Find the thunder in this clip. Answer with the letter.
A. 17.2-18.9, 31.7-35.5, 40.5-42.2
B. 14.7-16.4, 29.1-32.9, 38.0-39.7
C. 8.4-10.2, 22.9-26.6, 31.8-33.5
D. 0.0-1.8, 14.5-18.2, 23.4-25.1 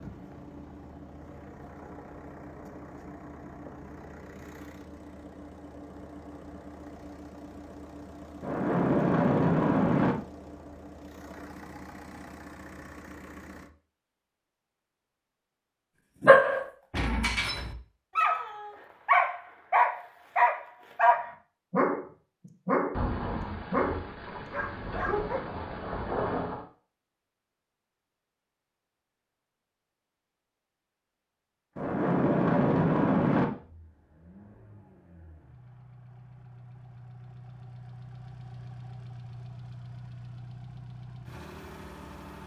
C.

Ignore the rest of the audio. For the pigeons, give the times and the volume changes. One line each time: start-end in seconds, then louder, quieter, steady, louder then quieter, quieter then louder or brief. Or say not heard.
not heard.